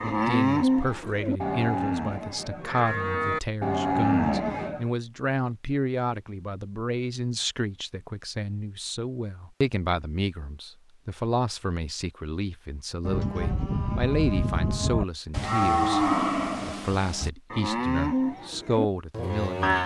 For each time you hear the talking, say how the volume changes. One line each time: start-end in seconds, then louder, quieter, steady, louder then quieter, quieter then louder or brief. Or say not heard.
0.0-19.8 steady.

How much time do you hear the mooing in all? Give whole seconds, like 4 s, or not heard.
12 s.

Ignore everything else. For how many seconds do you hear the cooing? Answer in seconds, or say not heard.
not heard.